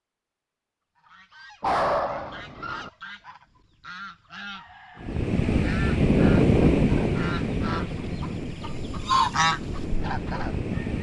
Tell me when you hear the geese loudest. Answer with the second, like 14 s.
9 s.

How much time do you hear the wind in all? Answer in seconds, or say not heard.
6 s.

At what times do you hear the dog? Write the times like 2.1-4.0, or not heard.
1.6-2.9.